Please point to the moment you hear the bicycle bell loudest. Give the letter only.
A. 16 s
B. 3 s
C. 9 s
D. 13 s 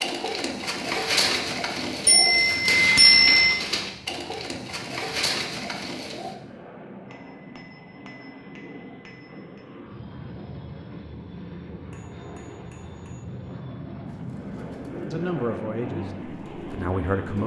B.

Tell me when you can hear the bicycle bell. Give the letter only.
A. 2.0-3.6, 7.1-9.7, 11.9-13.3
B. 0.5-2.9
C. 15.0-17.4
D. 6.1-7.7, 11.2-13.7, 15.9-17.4
A.